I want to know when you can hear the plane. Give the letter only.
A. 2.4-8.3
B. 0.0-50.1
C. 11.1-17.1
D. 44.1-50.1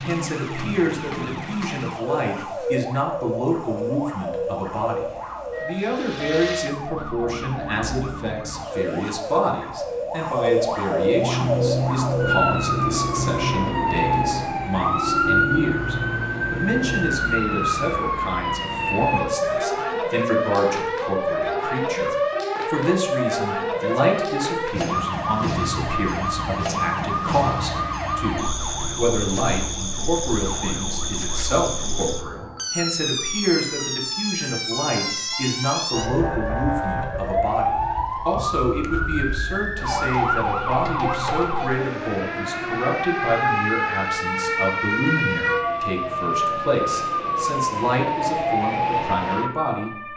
C.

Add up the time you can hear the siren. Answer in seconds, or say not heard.
50 s.